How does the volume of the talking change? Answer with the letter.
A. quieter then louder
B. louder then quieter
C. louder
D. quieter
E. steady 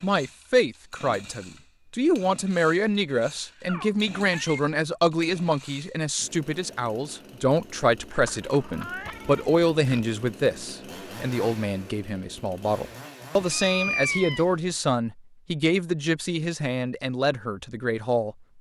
E.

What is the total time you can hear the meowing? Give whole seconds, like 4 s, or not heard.
4 s.